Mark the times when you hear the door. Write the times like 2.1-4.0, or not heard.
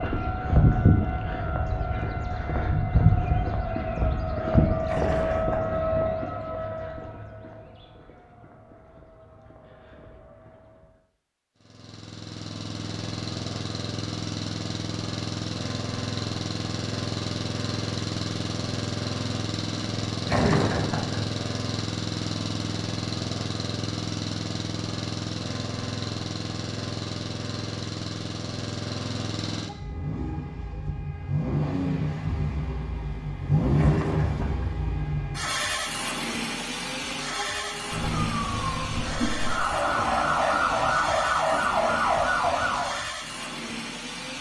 not heard.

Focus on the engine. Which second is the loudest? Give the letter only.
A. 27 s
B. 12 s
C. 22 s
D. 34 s
D.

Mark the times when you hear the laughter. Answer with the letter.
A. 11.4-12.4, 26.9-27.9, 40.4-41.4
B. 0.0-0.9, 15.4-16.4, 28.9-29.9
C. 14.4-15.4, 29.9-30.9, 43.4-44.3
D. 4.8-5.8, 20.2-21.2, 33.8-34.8
D.